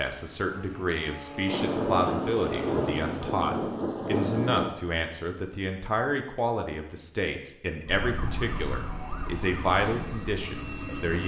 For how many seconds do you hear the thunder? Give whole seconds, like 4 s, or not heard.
3 s.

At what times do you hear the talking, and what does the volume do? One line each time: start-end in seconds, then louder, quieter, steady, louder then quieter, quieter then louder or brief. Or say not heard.
0.0-11.2 steady.